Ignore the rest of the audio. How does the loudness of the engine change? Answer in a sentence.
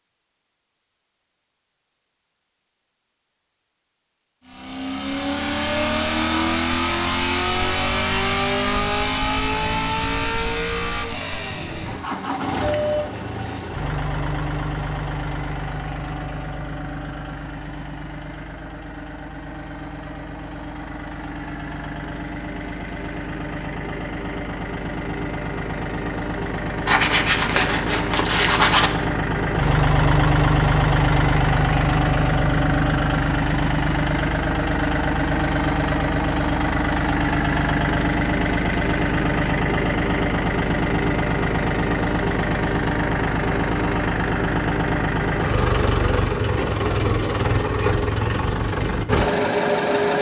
The volume of the engine goes down, then up.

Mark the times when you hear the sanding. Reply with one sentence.
You can hear the sanding from 26.9 to 28.9 s.